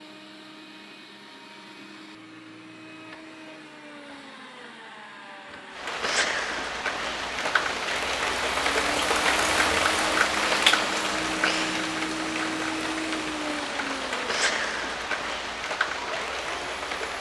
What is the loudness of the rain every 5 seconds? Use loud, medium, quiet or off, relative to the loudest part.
off, loud, loud, medium.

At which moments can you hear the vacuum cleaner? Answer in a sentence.
The vacuum cleaner can be heard from 0.0 to 17.1 s.